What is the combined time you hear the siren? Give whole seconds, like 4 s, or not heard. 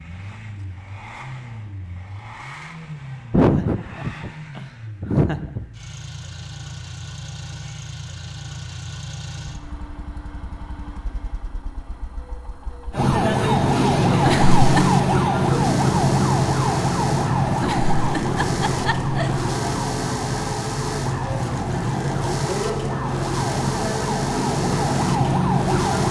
13 s.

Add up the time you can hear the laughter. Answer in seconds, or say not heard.
5 s.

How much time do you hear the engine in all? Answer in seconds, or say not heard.
26 s.